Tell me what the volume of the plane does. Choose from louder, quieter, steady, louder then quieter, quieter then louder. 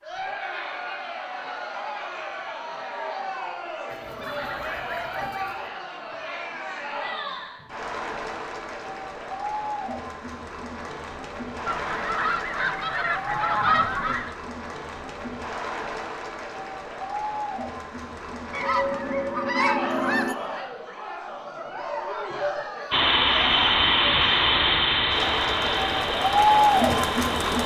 quieter.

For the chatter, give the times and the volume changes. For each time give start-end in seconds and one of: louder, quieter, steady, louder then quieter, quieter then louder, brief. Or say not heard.
0.0-27.6 louder.